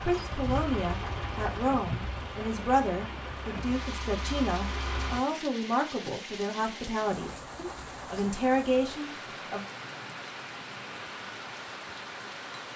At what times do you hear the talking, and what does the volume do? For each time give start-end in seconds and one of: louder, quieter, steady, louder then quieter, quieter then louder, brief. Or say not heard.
0.0-9.7 steady.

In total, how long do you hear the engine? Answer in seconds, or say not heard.
5 s.